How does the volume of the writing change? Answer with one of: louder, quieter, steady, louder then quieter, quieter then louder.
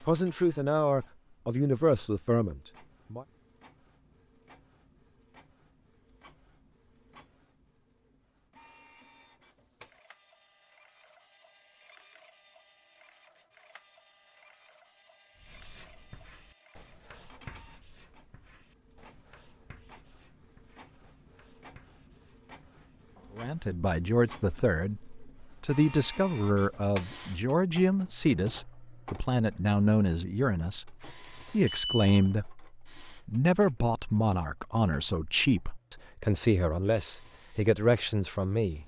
quieter.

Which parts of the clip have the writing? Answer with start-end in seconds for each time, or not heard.
15.3-23.4.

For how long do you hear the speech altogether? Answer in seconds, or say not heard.
19 s.